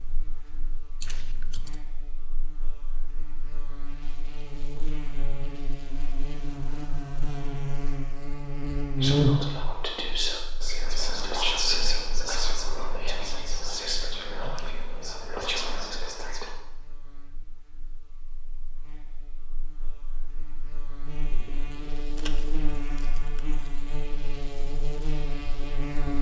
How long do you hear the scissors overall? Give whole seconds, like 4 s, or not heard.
4 s.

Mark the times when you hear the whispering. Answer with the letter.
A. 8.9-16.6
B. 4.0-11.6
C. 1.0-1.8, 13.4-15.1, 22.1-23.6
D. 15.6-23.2
A.